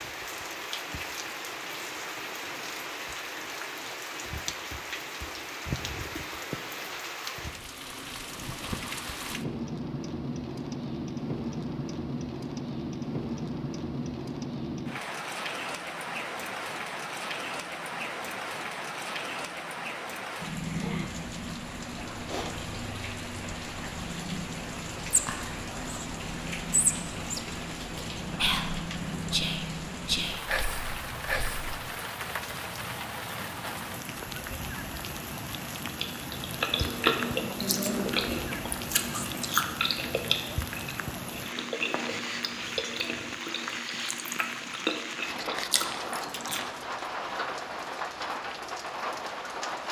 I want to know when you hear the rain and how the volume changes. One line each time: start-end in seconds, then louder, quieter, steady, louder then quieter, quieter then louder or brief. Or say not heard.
0.0-49.8 steady.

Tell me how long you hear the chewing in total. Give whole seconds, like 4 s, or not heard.
11 s.